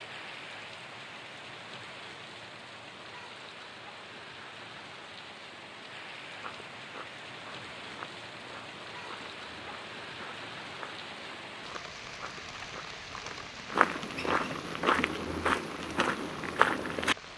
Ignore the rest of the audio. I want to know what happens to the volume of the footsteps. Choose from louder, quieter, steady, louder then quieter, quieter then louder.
louder.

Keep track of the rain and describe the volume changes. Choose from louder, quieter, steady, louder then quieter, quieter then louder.
steady.